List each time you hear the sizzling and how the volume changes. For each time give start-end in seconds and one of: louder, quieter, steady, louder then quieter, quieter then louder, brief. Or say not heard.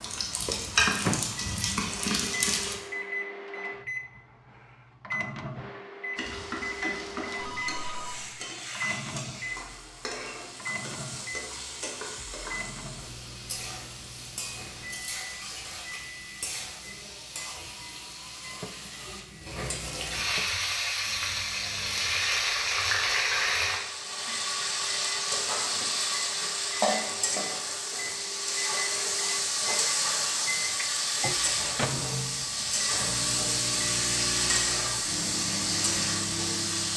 0.0-2.8 brief
6.2-36.9 louder.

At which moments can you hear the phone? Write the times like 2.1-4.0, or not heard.
7.3-8.3.